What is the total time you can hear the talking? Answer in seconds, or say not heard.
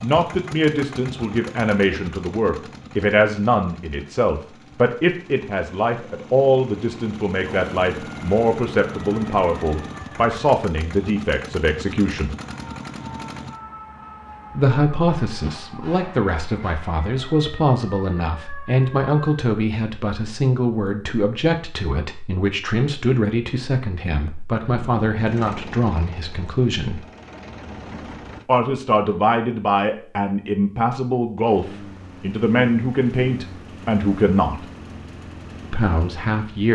32 s.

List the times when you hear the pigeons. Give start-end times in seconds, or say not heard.
not heard.